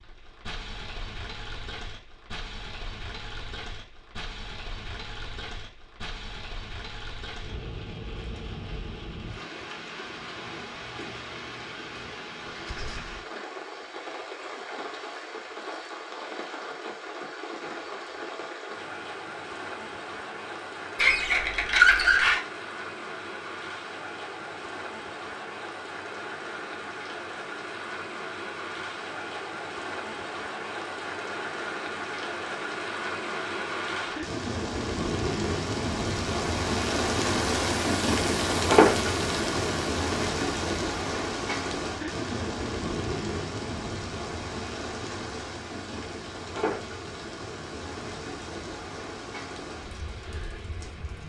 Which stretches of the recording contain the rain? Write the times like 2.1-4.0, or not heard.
0.0-51.2.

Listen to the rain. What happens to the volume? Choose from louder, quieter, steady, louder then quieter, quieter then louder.
louder then quieter.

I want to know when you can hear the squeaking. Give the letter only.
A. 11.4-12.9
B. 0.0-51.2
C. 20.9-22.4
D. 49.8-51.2
C.